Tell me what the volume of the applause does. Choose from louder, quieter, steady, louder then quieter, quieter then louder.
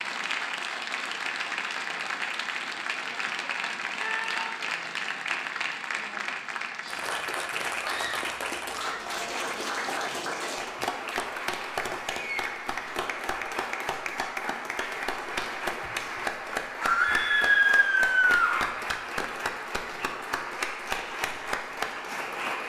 steady.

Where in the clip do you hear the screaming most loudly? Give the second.
18 s.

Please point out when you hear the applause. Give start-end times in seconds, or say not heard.
0.0-22.6.